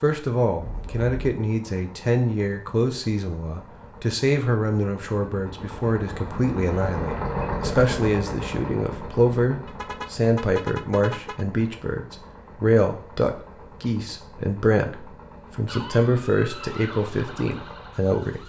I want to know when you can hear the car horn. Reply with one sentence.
You can hear the car horn from 0.6 to 1.1 s and from 9.7 to 11.4 s.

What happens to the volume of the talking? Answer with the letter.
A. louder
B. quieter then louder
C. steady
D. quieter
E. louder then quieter
C.